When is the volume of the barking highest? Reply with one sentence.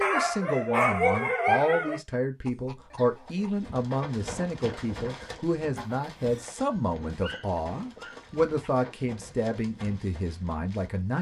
The volume of the barking peaks at 1 second.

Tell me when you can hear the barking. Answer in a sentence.
You can hear the barking from 0.0 to 2.0 s and from 6.7 to 8.7 s.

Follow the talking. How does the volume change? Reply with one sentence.
The loudness of the talking stays about the same.